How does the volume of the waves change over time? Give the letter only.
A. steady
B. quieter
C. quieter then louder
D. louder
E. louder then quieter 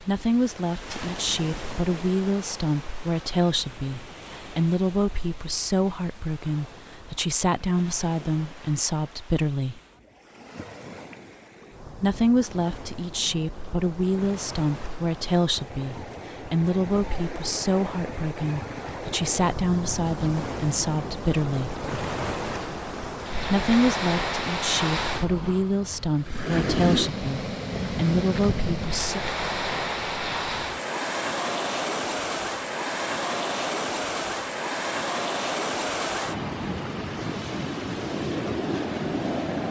D.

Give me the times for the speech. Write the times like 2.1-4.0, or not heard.
0.0-9.8, 11.9-21.8, 23.4-29.2.